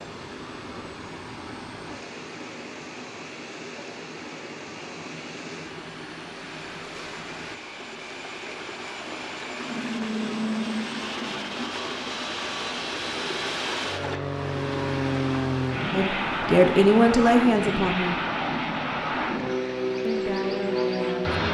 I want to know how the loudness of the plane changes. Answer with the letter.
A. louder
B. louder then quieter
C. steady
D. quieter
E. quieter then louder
A.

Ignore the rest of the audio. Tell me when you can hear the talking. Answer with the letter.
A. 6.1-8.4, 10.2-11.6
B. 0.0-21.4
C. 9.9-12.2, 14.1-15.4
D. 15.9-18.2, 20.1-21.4
D.